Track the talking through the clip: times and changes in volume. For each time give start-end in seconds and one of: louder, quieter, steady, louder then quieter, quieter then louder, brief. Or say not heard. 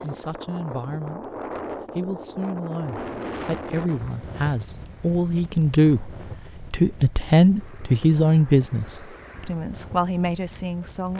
0.0-1.3 brief
1.9-11.1 louder then quieter.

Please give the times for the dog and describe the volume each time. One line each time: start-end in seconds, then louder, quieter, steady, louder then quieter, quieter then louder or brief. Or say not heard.
not heard.